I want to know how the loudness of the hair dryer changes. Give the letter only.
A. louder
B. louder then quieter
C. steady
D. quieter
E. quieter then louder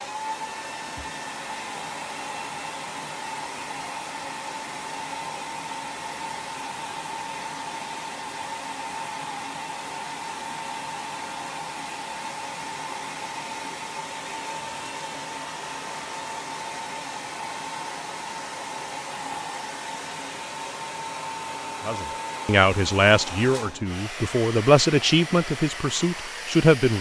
C.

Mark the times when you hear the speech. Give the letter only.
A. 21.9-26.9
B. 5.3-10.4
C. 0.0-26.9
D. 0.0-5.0
A.